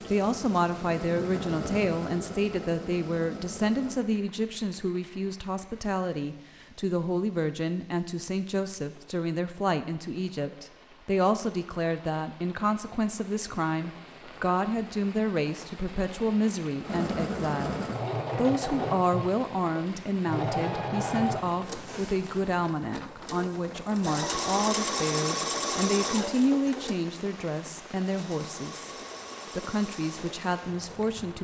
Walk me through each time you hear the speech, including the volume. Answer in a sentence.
You can hear the speech from 0.1 to 28.9 s, at a steady volume; and briefly from 29.6 to 31.3 s.